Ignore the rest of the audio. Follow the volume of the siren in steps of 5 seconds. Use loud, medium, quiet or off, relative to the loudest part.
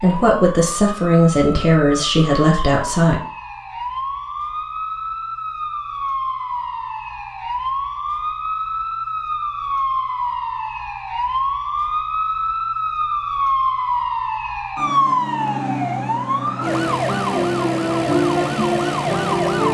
medium, medium, loud, loud.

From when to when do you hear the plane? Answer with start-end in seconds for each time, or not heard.
not heard.